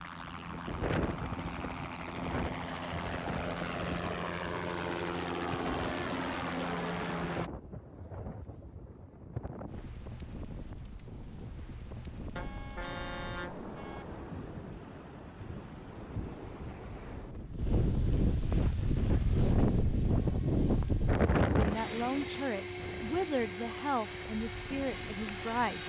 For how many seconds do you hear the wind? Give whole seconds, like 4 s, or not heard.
26 s.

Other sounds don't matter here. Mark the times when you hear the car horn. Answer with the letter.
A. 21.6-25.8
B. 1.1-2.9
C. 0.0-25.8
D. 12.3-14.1
D.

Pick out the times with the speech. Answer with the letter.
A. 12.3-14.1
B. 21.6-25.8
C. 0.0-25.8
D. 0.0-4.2
B.